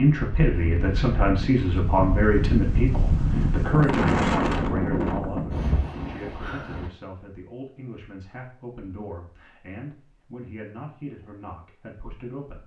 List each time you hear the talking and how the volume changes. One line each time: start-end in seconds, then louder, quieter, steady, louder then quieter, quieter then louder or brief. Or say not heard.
0.0-12.6 quieter.